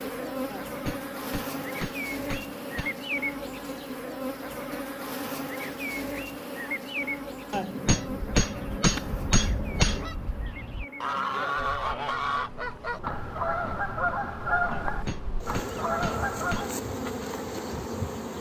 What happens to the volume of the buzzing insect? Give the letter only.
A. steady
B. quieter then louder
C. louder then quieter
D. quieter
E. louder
B.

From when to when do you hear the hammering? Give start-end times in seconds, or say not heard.
0.5-3.0, 7.5-10.1, 14.7-16.7.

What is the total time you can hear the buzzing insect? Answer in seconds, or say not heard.
18 s.